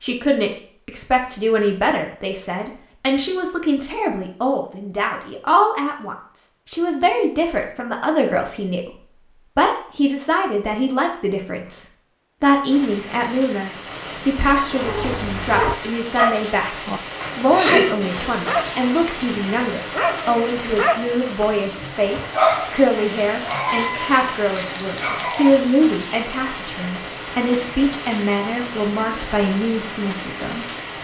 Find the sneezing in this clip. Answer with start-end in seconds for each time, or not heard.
17.0-18.0.